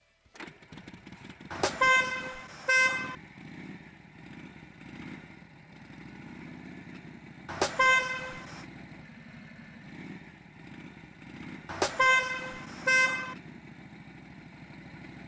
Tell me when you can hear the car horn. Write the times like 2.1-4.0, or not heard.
1.5-3.1, 7.5-8.6, 11.7-13.3.